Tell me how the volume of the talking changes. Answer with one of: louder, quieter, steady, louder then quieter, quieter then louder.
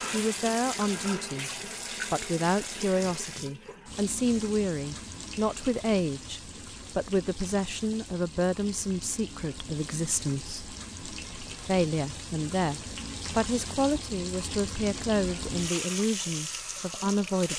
steady.